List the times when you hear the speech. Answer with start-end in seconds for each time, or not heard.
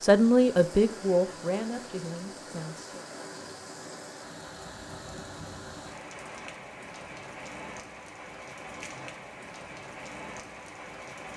0.0-3.0.